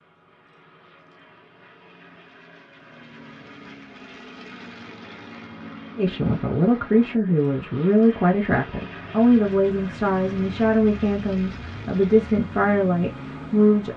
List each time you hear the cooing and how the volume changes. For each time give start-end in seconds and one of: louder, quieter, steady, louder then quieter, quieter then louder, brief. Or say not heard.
not heard.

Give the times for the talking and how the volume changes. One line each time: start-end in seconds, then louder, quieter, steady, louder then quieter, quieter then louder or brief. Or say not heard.
6.0-13.9 steady.